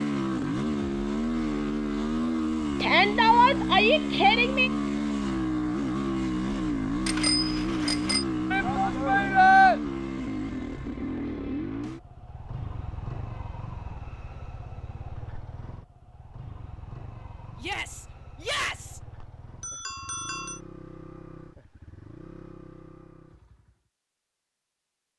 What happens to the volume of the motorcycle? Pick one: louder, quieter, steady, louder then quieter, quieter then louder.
quieter.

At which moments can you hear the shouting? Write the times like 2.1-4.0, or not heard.
2.8-4.7, 8.5-9.8, 17.6-19.0.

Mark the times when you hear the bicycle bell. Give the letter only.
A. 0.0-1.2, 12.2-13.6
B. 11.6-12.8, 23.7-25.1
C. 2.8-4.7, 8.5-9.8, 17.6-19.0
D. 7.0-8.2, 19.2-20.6
D.